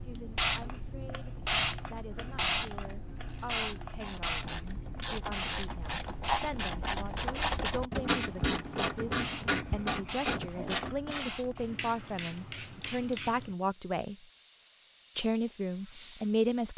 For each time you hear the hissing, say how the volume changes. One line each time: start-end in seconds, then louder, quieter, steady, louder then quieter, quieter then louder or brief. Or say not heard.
0.0-16.7 quieter.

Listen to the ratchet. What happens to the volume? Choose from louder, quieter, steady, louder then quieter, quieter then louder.
louder.